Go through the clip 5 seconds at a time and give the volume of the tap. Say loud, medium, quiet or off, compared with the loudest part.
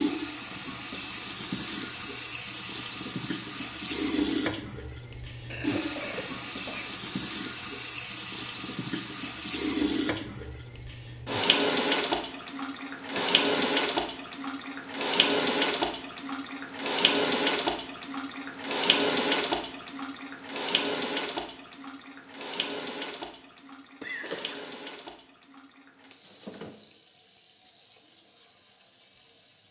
medium, medium, loud, loud, medium, quiet.